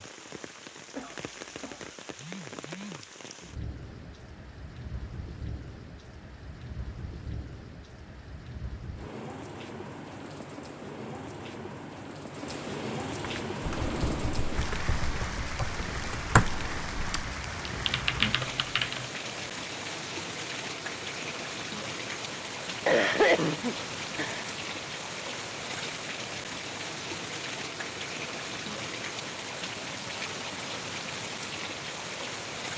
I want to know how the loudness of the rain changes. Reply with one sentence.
The volume of the rain goes up.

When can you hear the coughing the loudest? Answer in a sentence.
The volume of the coughing peaks at 23 seconds.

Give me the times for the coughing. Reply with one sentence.
The coughing can be heard from 0.9 to 1.8 s and from 22.9 to 24.5 s.